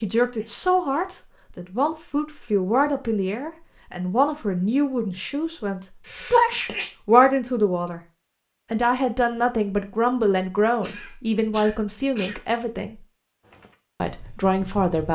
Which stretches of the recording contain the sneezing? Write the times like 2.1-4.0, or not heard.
0.3-1.1, 6.0-6.9, 10.8-12.4.